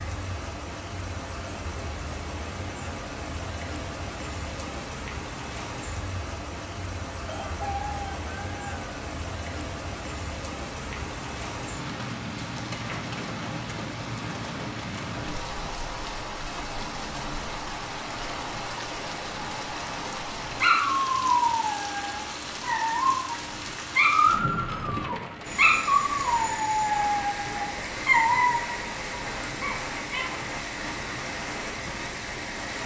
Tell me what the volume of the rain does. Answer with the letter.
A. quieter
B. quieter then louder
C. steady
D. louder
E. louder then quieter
C.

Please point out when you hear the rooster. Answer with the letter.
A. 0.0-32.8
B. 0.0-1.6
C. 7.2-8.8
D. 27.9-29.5
C.